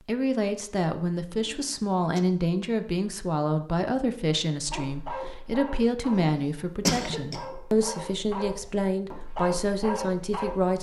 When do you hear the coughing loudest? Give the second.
7 s.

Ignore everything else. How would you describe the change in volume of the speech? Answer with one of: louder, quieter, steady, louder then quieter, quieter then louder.
steady.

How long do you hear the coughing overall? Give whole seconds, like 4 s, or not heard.
2 s.